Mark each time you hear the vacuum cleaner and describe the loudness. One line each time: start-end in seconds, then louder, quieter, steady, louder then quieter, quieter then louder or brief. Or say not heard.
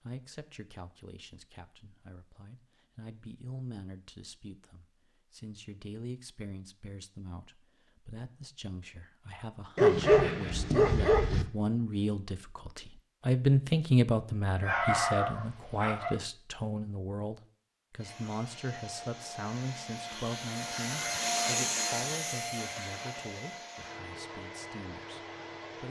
17.9-25.8 louder then quieter.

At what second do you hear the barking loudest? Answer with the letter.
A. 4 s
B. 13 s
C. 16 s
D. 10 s
D.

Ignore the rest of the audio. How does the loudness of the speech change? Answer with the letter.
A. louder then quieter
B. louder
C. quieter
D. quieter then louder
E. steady
A.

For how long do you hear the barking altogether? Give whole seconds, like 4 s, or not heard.
3 s.